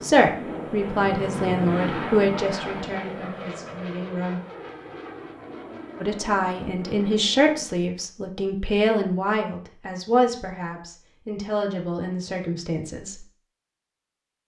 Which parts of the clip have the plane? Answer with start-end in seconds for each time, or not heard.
0.0-7.7.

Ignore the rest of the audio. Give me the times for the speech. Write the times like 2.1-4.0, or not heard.
0.0-4.4, 6.0-13.2.